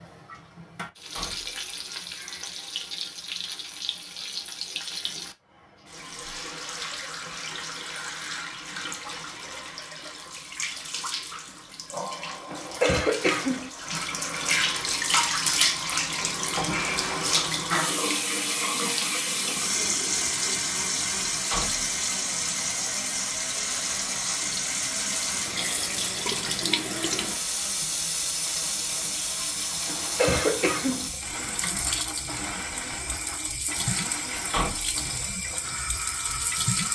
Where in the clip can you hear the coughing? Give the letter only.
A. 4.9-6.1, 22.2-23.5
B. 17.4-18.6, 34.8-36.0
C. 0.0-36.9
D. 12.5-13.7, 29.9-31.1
D.